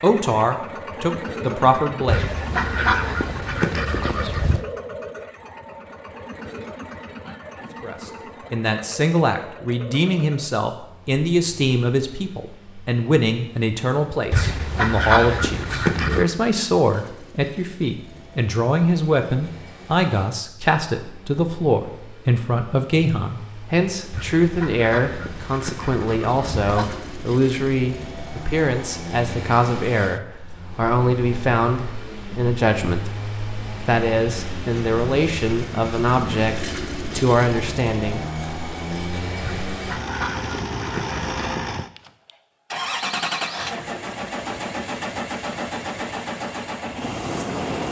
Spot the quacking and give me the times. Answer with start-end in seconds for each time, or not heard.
2.0-4.6, 14.3-16.2, 24.1-27.0, 39.4-41.4.